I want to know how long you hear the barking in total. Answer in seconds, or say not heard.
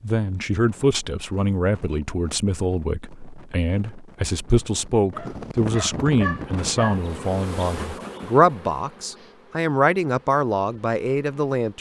2 s.